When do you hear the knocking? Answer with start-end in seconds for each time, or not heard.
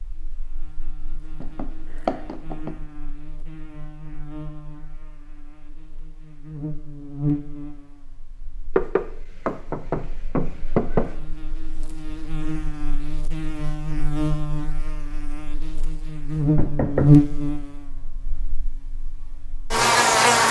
1.4-2.8, 8.8-11.2, 16.6-17.1.